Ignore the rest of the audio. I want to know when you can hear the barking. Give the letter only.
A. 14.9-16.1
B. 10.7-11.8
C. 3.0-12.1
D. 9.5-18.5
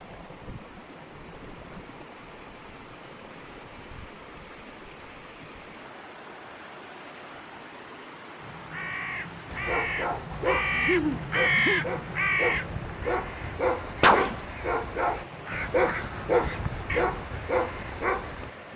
D.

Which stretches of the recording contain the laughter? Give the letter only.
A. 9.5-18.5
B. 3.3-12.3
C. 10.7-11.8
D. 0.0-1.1
C.